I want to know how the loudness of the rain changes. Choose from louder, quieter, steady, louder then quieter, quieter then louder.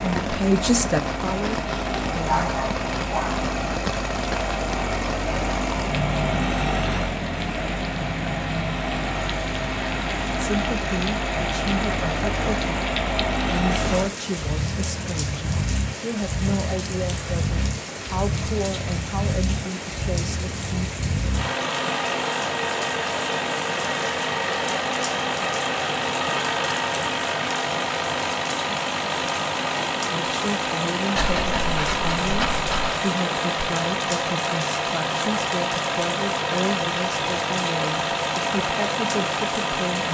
steady.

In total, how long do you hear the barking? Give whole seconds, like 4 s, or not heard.
3 s.